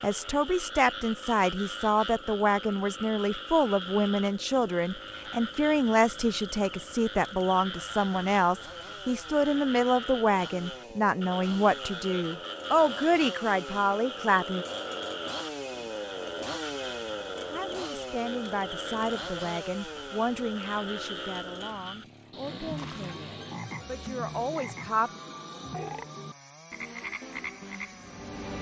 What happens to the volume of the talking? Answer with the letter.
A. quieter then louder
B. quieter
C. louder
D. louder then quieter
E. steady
B.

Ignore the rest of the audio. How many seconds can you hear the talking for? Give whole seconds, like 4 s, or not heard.
22 s.